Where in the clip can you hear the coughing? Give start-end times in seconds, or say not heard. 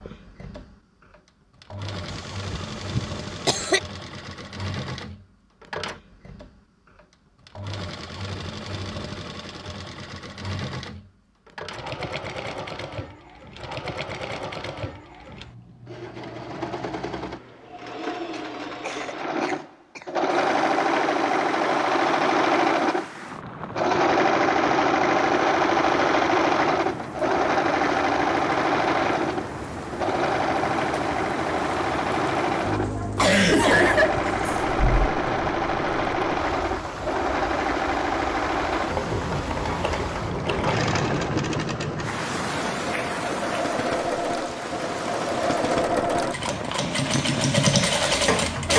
2.1-3.8, 18.3-20.1, 33.1-35.1.